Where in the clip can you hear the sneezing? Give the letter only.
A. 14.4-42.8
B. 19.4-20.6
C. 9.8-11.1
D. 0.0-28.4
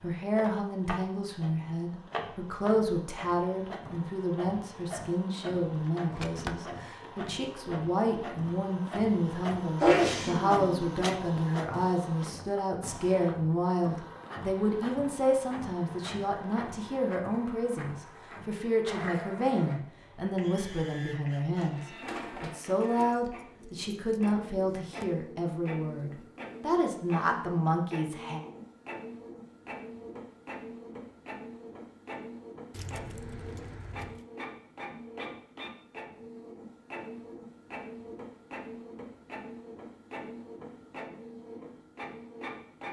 C.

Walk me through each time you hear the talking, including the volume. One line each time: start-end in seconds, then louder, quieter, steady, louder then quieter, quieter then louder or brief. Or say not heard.
0.0-28.4 steady.